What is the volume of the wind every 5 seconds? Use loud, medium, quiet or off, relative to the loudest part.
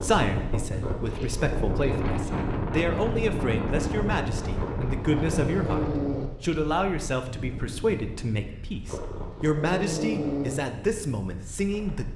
loud, medium, quiet.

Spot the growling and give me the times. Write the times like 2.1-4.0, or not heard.
0.8-1.6, 4.5-6.3, 8.8-10.6.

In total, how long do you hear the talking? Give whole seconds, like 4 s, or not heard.
12 s.